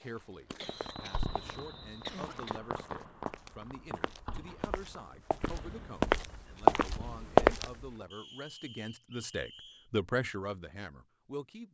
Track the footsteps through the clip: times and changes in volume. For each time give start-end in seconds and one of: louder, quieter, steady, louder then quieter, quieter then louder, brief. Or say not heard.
0.1-7.7 louder.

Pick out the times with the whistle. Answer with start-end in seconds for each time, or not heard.
0.8-2.5, 8.1-9.9.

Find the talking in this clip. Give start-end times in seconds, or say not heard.
0.0-11.6.